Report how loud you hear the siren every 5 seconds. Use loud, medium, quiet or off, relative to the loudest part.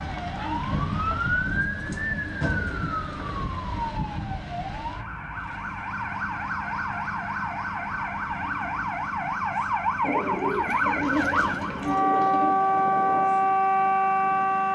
medium, medium, loud.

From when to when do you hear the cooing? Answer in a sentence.
The cooing can be heard from 1.6 to 3.5 s and from 10.0 to 12.6 s.